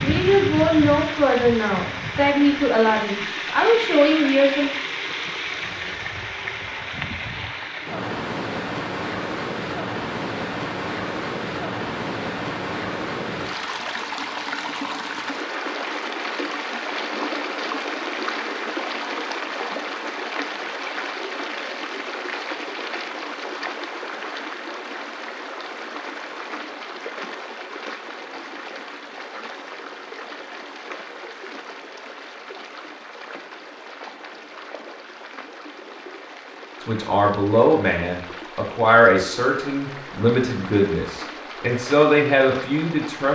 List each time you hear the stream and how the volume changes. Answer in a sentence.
The stream can be heard from 0.0 to 43.3 s, getting quieter.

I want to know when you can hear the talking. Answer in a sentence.
You can hear the talking from 0.0 to 4.7 s and from 36.8 to 43.3 s.